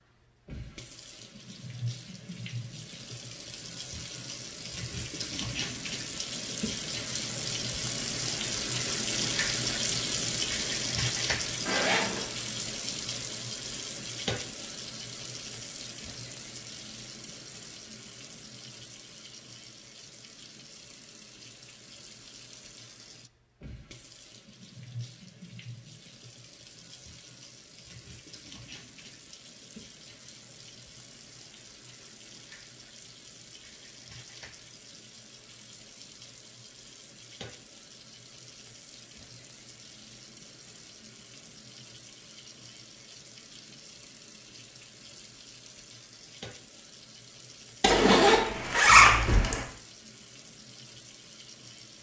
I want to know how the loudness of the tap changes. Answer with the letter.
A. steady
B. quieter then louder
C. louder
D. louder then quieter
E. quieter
E.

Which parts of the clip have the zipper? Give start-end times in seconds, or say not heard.
11.7-12.2, 47.8-49.6.